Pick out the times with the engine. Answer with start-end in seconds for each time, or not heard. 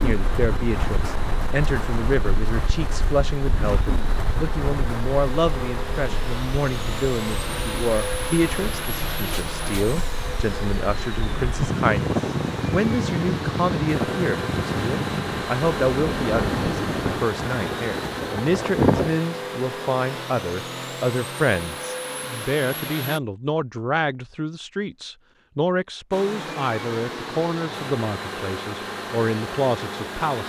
0.0-23.2, 26.1-30.4.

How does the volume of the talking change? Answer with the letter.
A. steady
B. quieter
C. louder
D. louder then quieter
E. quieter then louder
A.